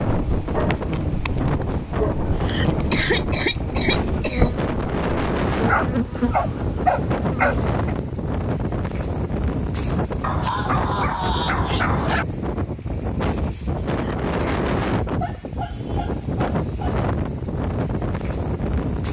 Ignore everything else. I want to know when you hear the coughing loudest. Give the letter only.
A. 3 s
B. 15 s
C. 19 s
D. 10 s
A.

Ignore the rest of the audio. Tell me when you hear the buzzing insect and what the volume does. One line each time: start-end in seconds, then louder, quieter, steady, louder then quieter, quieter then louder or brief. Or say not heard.
0.0-8.1 louder then quieter.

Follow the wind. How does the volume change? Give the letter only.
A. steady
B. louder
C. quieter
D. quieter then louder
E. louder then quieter
A.